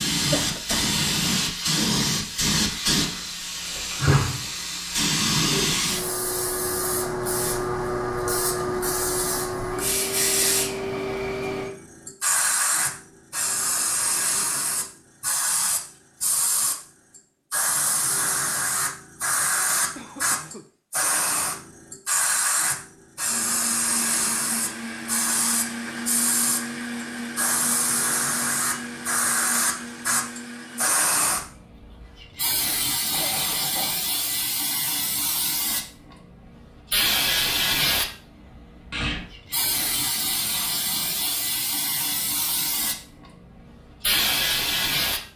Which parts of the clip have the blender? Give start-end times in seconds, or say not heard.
23.2-30.9.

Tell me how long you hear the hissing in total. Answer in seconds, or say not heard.
45 s.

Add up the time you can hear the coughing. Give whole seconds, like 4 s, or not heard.
2 s.